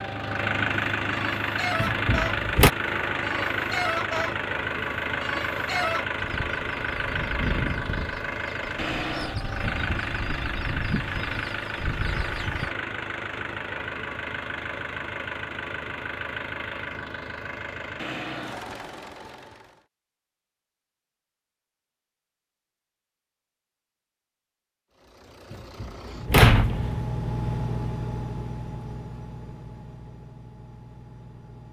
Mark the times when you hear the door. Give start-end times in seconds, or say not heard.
1.8-2.7, 25.5-27.1.